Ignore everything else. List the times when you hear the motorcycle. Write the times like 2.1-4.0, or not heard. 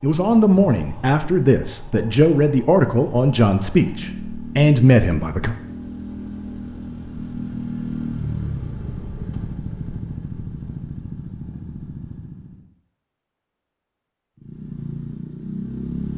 0.0-12.7, 14.3-16.1.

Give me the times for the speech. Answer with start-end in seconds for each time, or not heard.
0.0-5.5.